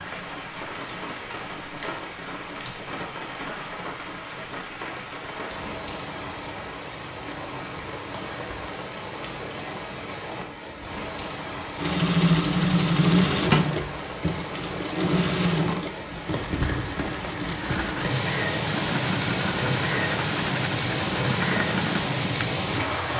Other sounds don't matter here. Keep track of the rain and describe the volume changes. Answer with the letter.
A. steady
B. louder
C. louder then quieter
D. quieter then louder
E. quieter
B.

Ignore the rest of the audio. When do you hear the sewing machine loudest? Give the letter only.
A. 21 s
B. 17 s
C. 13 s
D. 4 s
C.